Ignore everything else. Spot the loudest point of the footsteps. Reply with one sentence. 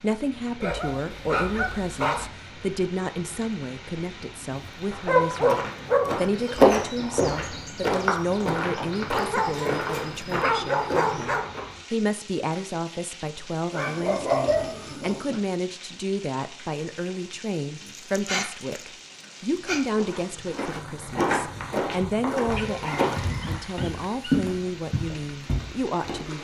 The volume of the footsteps peaks at 7 seconds.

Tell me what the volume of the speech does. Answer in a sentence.
The volume of the speech stays about the same.